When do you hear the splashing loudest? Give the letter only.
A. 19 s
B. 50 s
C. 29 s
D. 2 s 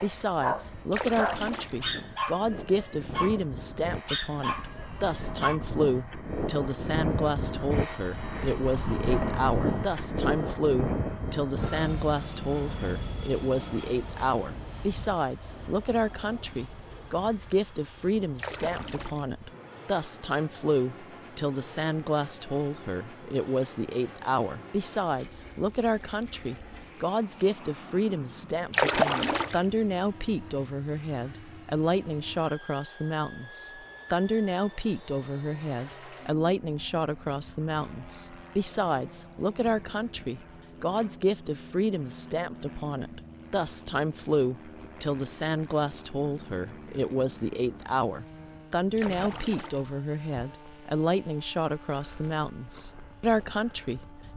C.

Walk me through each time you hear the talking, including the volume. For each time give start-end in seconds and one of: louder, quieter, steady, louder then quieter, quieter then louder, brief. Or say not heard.
0.0-54.0 steady.